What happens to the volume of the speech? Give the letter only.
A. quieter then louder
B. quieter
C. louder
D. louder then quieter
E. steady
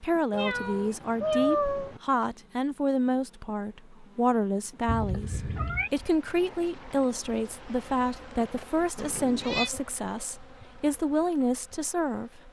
E.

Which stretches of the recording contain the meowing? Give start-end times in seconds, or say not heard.
0.3-2.0, 4.8-5.9, 8.9-9.7.